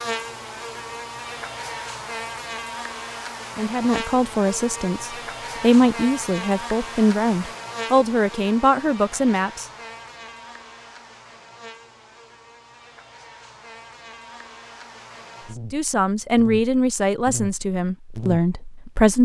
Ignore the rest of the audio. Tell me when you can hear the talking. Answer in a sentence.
You can hear the talking from 3.5 to 9.7 s and from 15.7 to 19.1 s.